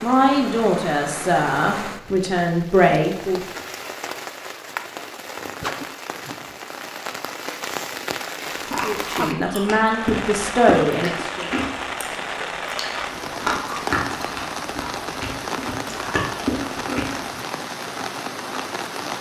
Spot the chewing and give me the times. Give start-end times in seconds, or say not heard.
8.7-17.2.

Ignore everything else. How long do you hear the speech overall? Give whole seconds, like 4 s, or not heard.
6 s.